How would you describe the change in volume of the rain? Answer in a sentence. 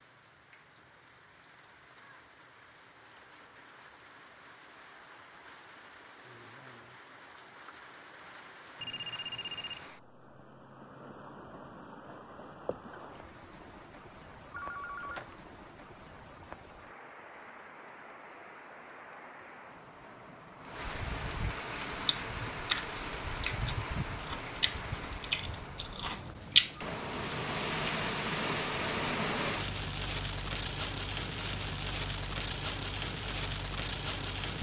The loudness of the rain goes up.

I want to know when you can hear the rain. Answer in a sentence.
You can hear the rain from 0.0 to 34.5 s.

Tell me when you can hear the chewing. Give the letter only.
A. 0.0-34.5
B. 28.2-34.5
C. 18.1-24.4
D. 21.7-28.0
D.